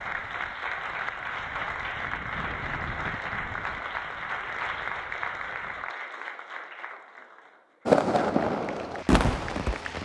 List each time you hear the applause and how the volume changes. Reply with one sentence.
The applause can be heard from 0.0 to 10.0 s, getting quieter.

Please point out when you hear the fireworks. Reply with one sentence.
The fireworks can be heard from 7.8 to 10.0 s.